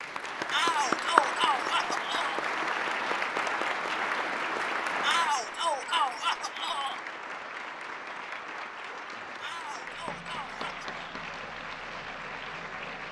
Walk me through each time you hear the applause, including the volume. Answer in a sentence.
You can hear the applause from 0.0 to 13.0 s, getting quieter.